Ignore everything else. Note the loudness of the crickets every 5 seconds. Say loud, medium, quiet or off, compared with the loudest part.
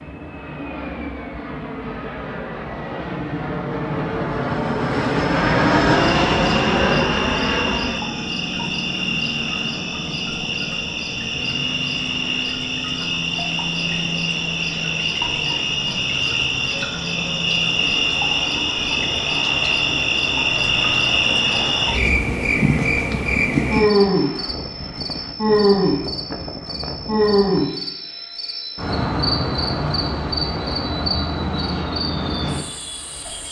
off, medium, medium, loud, loud, loud, medium.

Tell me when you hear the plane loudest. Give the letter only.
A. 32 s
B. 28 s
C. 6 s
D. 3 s
C.